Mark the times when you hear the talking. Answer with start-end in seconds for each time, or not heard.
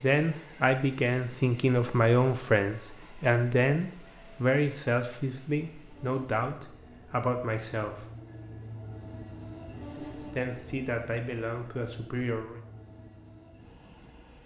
0.0-8.1, 10.2-12.6.